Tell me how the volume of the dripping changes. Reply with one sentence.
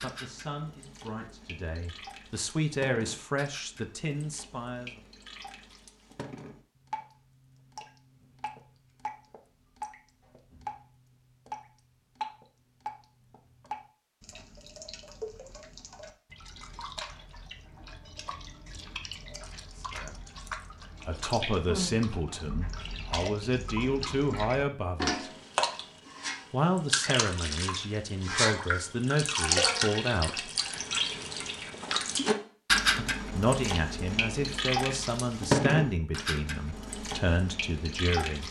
The volume of the dripping goes up.